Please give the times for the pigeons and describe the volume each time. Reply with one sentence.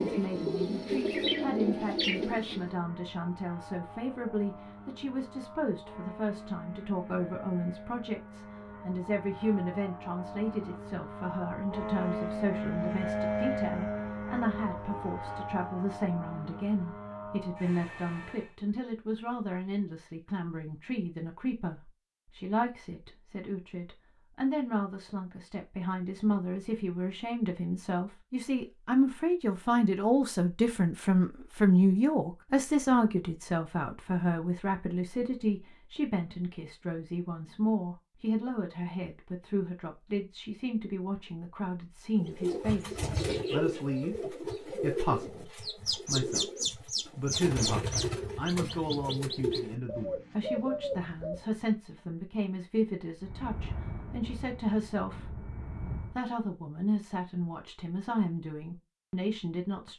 You can hear the pigeons briefly from 0.0 to 2.8 s; and from 42.1 to 51.5 s, at a steady volume.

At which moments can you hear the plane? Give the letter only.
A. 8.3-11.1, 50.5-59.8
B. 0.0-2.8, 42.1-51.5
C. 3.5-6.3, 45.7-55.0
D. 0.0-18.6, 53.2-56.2
D.